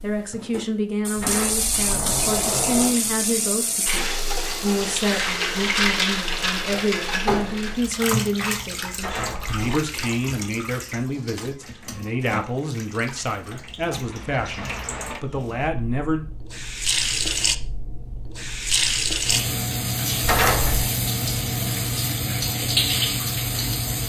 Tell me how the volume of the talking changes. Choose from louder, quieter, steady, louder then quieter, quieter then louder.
steady.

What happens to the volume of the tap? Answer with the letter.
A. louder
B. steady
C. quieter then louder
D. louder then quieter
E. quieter
C.